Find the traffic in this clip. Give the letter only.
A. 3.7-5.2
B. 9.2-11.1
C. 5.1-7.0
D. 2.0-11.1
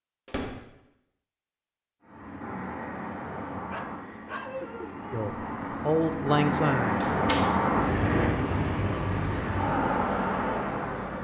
D.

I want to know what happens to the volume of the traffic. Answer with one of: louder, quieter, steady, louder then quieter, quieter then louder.
louder.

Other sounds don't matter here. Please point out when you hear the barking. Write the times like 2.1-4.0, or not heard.
3.7-5.2.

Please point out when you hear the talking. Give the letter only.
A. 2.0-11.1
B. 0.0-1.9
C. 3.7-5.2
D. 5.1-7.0
D.